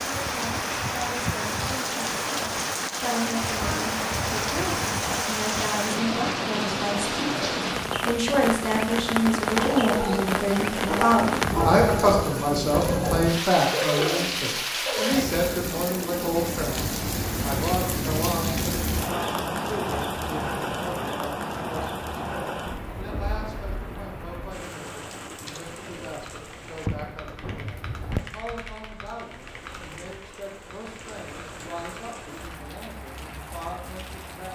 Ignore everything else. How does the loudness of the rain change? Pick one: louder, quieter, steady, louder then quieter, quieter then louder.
quieter.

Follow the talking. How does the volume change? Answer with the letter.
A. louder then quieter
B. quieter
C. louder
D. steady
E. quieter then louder
A.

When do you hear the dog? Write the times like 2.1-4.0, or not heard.
9.5-15.2.